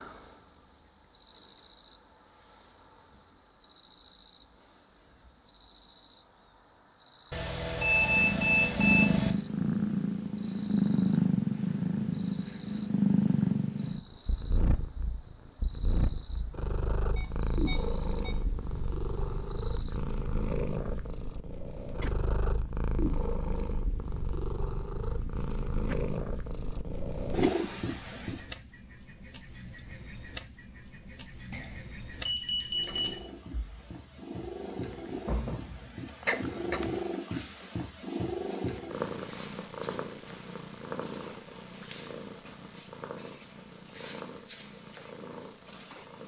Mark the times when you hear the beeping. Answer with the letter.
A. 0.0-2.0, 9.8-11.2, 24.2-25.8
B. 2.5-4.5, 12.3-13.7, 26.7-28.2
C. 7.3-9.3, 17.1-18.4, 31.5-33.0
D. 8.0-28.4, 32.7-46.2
C.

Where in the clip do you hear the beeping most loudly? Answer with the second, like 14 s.
8 s.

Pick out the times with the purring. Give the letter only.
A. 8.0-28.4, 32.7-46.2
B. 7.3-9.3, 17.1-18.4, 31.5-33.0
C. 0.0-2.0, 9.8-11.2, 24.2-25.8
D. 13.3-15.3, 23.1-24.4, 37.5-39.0
A.